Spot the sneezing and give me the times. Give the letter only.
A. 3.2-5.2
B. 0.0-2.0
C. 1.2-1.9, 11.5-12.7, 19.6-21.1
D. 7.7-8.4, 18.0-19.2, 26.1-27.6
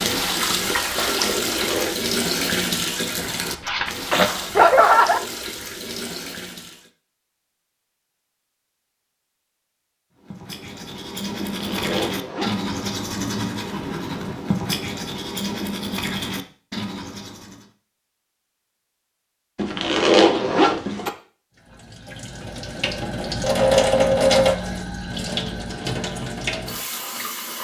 A.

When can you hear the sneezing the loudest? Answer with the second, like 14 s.
5 s.